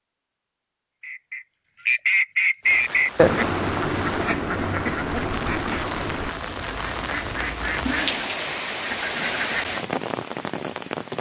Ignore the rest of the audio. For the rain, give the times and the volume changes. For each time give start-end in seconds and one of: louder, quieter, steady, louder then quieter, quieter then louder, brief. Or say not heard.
2.6-11.1 louder.